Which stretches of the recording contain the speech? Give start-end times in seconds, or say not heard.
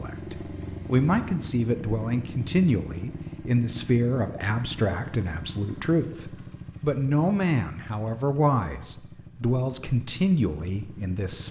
0.0-11.4.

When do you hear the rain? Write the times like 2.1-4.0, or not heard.
not heard.